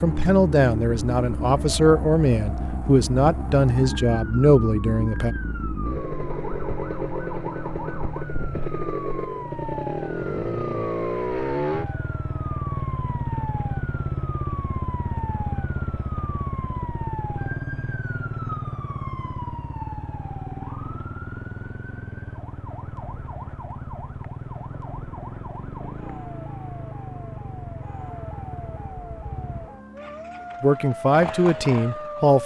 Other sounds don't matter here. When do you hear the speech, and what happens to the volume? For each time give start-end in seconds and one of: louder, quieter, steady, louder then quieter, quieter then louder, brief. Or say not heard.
0.0-5.3 steady
30.6-32.4 brief.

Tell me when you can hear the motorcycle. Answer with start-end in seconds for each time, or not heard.
0.0-32.4.